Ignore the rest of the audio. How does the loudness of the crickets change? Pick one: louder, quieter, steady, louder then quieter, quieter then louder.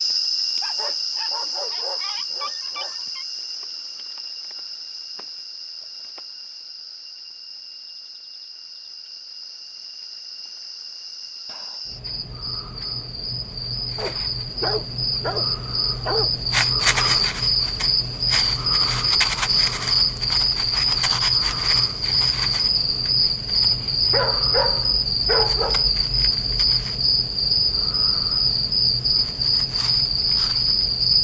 quieter then louder.